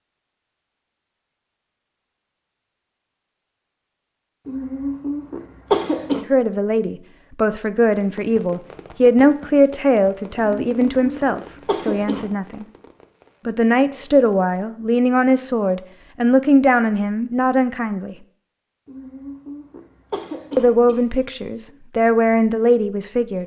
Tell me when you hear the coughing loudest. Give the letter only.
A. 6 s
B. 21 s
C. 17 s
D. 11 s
A.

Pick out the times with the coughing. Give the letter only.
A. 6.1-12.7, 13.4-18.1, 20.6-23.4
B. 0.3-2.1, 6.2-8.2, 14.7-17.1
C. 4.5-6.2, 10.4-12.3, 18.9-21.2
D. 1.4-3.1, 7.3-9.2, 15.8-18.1
C.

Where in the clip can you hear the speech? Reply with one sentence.
The speech can be heard from 6.1 to 12.7 s, from 13.4 to 18.1 s and from 20.6 to 23.4 s.